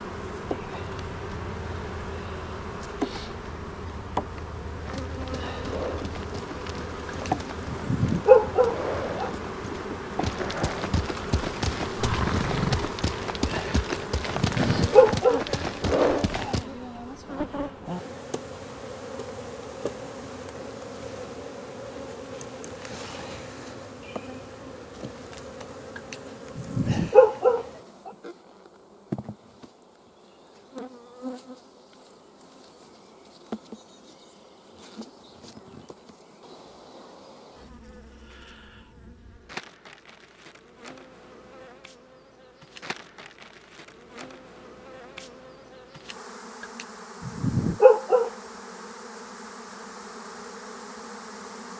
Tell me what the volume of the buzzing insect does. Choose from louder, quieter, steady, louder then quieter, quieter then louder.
quieter.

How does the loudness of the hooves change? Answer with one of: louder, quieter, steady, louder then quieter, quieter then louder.
louder.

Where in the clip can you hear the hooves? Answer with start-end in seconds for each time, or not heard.
4.8-16.6.